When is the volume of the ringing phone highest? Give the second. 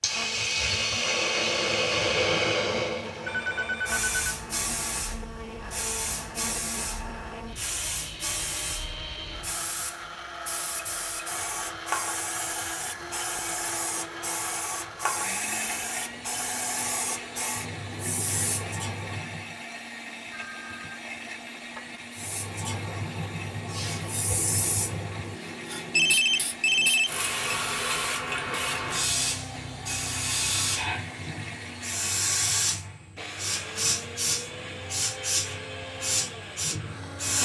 26 s.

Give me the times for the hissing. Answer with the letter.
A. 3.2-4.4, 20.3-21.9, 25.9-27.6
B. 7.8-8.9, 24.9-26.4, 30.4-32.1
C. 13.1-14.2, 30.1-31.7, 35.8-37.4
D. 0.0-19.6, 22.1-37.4
D.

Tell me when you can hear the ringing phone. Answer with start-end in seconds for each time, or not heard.
3.2-4.4, 20.3-21.9, 25.9-27.6.